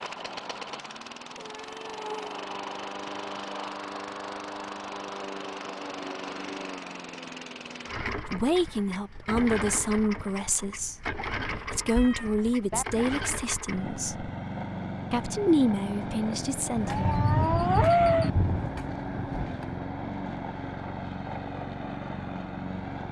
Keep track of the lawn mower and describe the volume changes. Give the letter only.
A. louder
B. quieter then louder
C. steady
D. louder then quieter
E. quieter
C.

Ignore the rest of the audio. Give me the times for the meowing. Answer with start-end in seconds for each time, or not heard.
1.4-2.4, 11.9-12.8, 16.9-18.3.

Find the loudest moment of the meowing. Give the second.
18 s.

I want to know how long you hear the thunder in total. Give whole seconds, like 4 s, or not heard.
3 s.